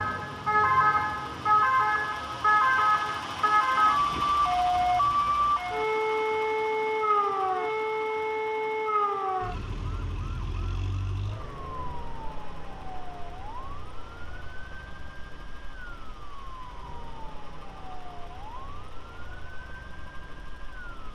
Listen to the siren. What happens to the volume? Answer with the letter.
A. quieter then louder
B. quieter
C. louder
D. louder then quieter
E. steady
B.